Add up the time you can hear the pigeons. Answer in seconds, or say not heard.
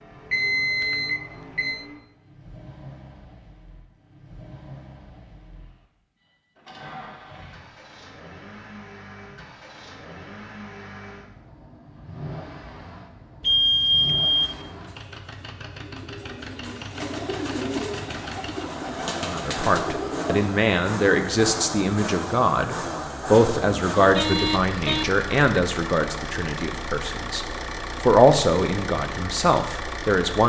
6 s.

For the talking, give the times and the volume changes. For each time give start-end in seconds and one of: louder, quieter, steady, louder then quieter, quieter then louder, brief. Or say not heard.
19.2-30.4 quieter then louder.